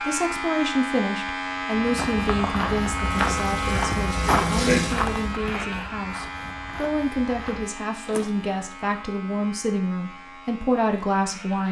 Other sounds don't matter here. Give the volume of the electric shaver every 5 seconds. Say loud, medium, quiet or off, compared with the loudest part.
loud, medium, quiet.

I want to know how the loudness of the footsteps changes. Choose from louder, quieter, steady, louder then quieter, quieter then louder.
quieter.